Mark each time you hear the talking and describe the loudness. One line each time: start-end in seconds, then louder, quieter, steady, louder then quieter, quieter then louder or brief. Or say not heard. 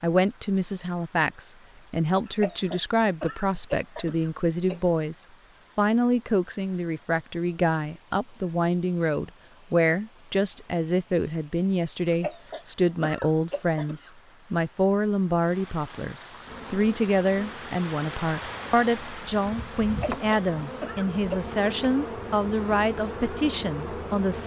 0.0-24.4 steady.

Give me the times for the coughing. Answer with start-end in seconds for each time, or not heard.
2.2-4.8, 12.1-14.1, 19.9-21.4.